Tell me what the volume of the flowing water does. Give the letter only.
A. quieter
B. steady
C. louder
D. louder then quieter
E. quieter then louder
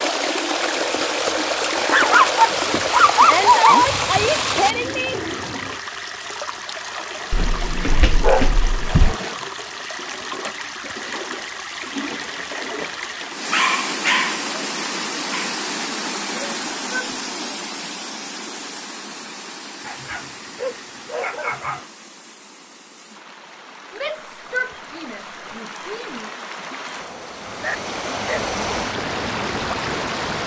E.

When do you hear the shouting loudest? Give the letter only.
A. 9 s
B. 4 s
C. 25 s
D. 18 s
B.